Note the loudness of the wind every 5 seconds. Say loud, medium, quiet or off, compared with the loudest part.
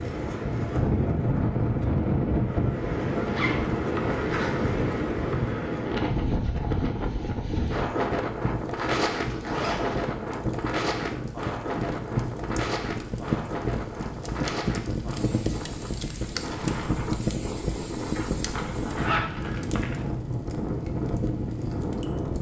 loud, loud, medium, medium, medium.